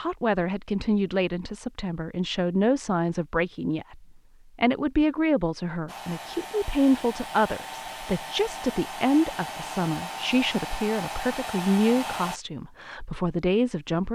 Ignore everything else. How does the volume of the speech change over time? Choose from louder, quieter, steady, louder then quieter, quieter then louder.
steady.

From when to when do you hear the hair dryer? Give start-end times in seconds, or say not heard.
5.8-12.4.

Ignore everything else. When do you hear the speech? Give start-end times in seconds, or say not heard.
0.0-14.1.